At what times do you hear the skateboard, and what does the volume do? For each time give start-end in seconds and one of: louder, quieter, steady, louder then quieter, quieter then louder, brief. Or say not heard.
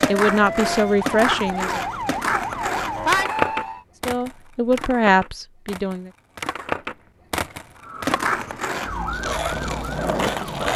0.0-10.7 quieter then louder.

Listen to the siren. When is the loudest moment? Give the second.
3 s.